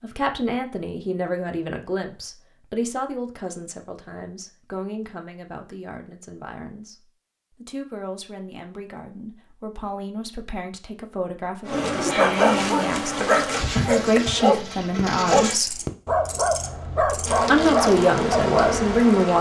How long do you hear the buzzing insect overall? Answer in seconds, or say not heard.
8 s.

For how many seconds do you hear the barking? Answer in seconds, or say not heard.
7 s.